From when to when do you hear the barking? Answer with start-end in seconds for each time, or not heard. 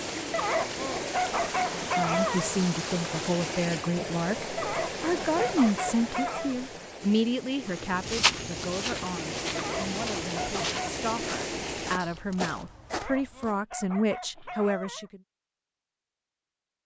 0.3-2.5, 4.5-6.5, 9.6-11.1, 12.9-15.1.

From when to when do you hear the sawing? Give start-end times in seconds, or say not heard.
not heard.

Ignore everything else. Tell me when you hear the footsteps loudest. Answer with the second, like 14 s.
8 s.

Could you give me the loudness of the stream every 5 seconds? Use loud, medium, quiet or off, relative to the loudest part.
loud, loud, loud, off.